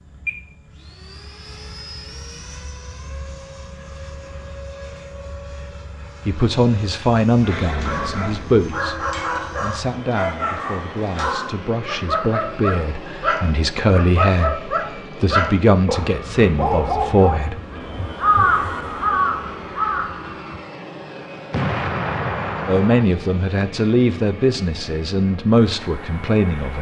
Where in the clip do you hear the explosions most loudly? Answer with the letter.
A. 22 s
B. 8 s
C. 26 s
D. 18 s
A.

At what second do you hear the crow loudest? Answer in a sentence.
The volume of the crow peaks at 18 seconds.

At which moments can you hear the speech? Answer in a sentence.
The speech can be heard from 6.2 to 17.6 s and from 22.6 to 26.7 s.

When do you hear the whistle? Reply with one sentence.
You can't hear the whistle here.